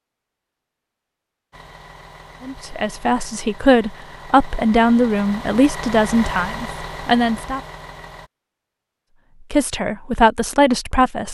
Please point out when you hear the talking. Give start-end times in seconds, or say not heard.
2.4-7.6, 9.5-11.2.